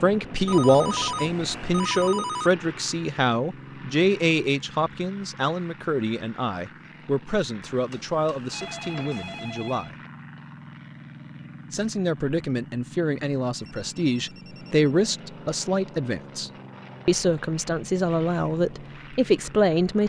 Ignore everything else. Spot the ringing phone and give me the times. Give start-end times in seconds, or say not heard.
0.5-2.5, 7.7-9.9, 13.6-14.8.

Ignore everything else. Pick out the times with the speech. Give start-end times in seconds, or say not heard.
0.0-9.9, 11.7-20.0.